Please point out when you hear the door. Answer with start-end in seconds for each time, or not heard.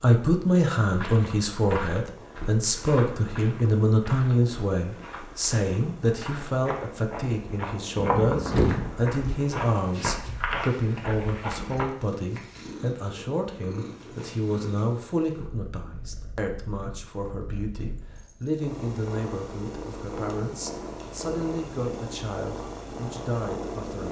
8.0-9.1.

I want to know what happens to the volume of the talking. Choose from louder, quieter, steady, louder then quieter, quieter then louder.
quieter.